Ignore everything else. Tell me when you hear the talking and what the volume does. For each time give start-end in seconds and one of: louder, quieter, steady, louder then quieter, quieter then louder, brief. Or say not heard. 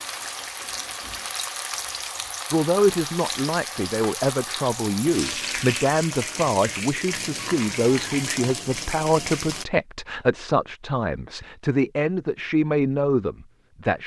2.5-14.0 steady.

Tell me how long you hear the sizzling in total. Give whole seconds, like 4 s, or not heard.
10 s.